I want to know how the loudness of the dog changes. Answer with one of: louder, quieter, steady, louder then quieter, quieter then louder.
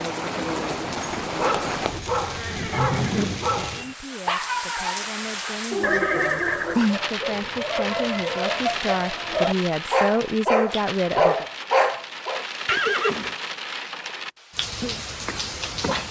louder.